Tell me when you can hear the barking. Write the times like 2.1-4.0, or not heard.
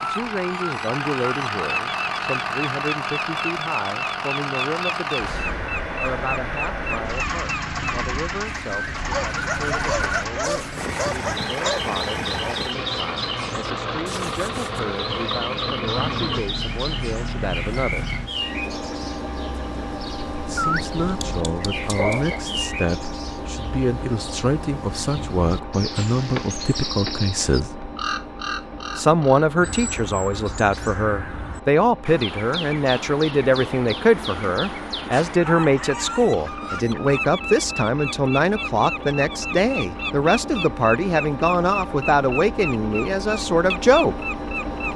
9.1-11.8, 20.6-22.4, 35.2-37.2.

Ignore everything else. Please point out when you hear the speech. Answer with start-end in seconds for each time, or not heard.
0.0-18.1, 20.4-27.9, 28.9-44.1.